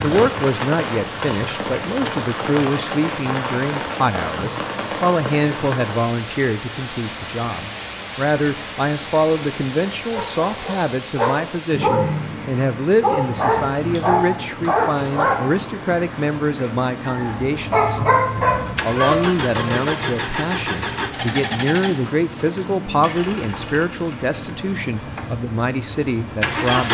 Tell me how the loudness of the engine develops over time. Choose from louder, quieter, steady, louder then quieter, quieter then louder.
quieter.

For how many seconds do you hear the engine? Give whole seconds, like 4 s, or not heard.
8 s.